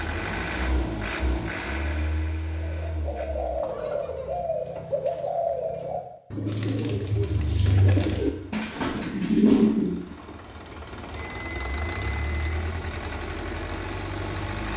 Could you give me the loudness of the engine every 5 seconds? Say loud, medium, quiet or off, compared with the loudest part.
loud, quiet, loud.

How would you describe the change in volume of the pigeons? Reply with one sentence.
The volume of the pigeons goes up.